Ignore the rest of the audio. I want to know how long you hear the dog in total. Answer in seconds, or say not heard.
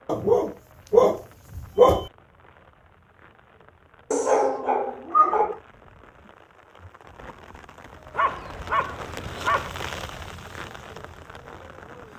5 s.